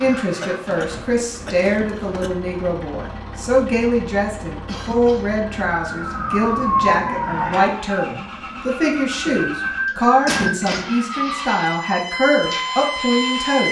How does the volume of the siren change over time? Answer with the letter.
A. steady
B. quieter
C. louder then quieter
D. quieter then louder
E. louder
D.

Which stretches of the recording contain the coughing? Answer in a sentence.
You can hear the coughing from 0.4 to 2.3 s, from 4.7 to 5.3 s and from 10.2 to 10.9 s.